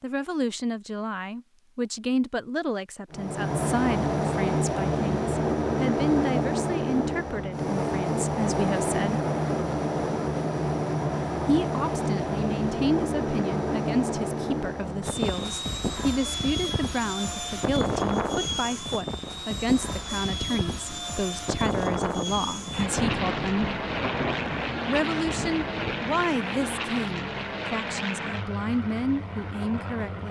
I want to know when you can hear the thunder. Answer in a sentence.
You can hear the thunder from 22.4 to 26.4 s.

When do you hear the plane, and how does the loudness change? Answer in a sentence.
You can hear the plane from 3.1 to 30.2 s, getting quieter.